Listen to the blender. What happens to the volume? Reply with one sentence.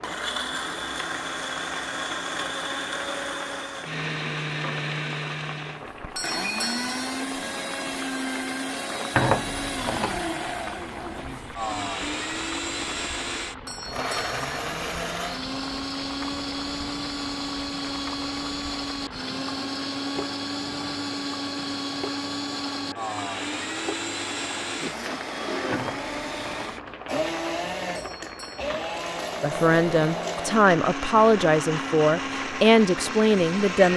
The volume of the blender stays about the same.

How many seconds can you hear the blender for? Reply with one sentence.
The blender can be heard for 34 seconds in total.